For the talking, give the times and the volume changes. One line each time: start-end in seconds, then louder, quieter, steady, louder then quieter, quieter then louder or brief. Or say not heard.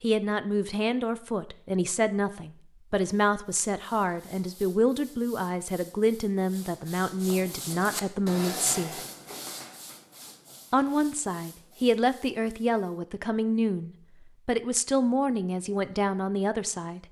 0.0-8.9 steady
10.7-17.0 steady.